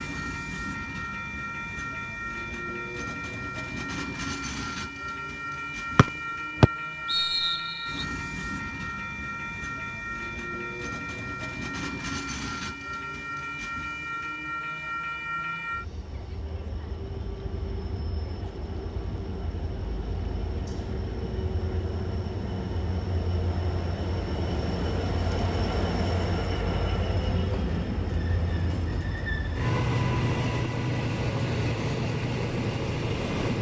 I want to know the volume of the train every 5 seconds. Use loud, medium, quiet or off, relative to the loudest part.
medium, medium, medium, medium, medium, loud, loud.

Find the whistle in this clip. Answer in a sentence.
The whistle can be heard from 6.0 to 8.1 s.